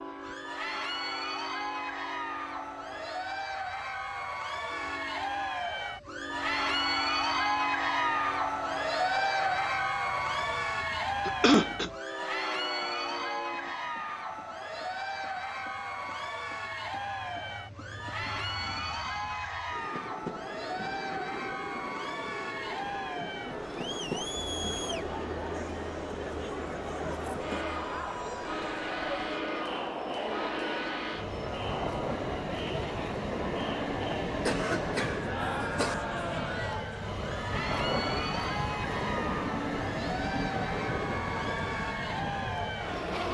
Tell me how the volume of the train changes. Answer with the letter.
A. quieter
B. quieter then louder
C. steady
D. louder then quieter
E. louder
E.